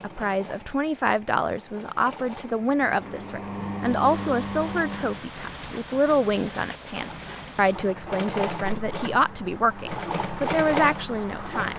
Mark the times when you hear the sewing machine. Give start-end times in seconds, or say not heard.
0.0-5.2, 6.9-11.7.